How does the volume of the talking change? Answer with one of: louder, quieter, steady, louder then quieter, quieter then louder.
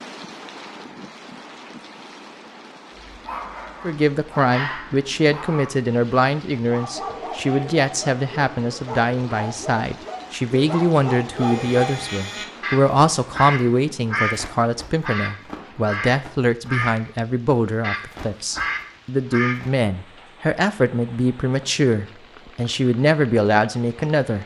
steady.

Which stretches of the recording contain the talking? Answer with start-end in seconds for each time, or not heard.
3.8-24.4.